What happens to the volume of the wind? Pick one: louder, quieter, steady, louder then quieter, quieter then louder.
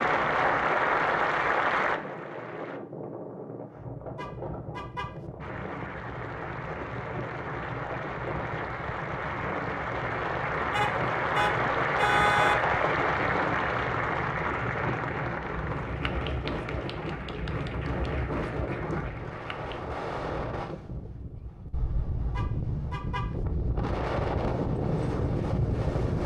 louder.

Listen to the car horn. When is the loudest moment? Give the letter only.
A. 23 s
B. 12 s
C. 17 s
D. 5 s
B.